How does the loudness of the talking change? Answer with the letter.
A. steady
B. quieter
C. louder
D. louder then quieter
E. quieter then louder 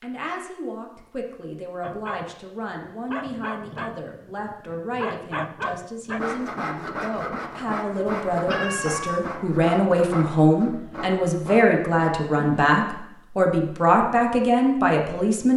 C.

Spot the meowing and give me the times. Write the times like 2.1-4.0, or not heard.
8.1-9.2.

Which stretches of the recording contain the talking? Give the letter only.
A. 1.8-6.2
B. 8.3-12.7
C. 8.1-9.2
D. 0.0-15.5
D.